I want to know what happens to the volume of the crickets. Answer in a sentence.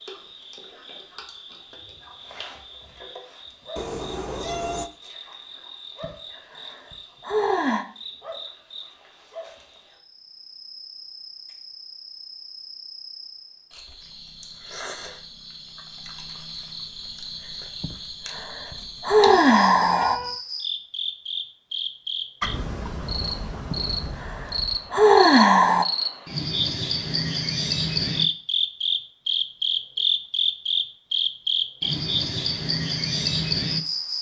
The loudness of the crickets goes up.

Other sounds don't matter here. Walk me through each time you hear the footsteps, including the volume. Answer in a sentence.
You can't hear the footsteps here.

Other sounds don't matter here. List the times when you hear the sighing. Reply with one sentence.
You can hear the sighing from 6.0 to 7.8 s, from 17.8 to 20.2 s and from 23.7 to 25.9 s.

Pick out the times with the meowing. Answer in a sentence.
The meowing can be heard from 3.8 to 4.9 s and from 19.2 to 20.4 s.